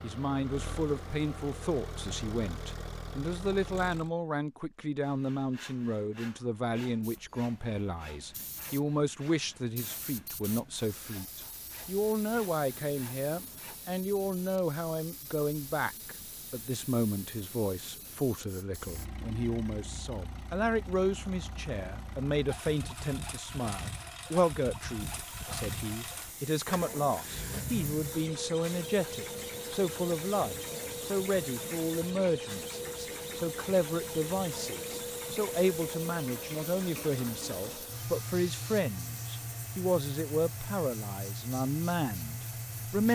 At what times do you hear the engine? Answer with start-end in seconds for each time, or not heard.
0.0-4.1, 18.8-43.1.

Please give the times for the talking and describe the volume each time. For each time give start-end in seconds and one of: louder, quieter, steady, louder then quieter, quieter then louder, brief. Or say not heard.
0.0-43.1 steady.